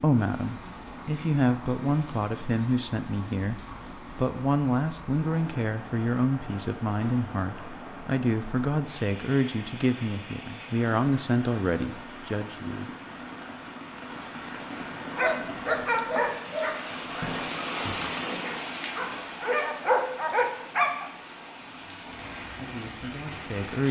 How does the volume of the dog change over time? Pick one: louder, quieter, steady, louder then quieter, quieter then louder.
quieter then louder.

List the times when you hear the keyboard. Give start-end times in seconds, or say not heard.
not heard.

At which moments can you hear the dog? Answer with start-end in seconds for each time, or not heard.
15.2-21.1.